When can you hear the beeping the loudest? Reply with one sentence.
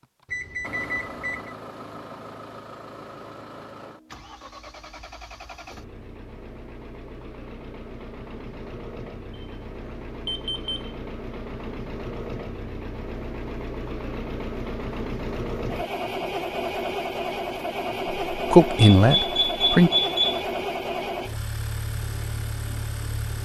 The loudest moment of the beeping is at 20 seconds.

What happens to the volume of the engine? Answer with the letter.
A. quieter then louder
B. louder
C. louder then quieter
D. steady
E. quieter
B.